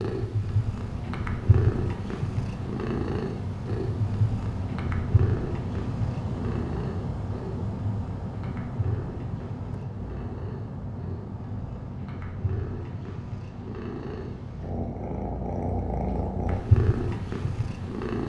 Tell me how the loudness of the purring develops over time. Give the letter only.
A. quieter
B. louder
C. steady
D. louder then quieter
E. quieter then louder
E.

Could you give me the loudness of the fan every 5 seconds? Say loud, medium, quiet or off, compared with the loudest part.
loud, loud, medium, medium.